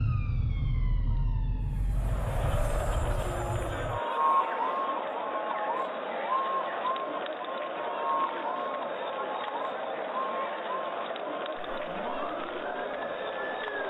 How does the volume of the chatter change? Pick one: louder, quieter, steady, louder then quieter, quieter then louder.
steady.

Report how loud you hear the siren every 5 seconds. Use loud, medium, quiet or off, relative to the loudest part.
loud, loud, medium.